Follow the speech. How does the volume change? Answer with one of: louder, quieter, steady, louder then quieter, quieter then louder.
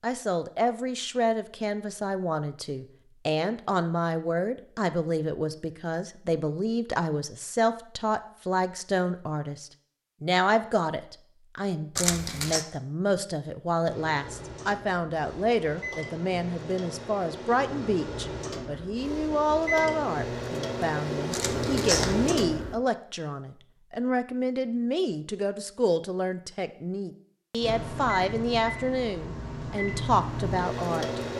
steady.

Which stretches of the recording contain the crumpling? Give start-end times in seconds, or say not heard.
11.9-12.7, 21.3-22.1.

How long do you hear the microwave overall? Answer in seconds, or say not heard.
13 s.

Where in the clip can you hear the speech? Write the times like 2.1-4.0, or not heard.
0.0-31.2.